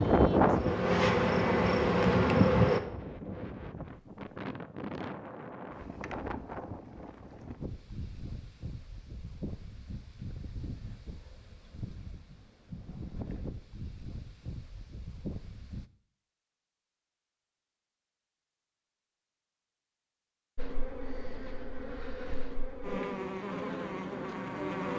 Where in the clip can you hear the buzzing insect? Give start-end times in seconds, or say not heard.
0.0-2.8, 20.6-24.9.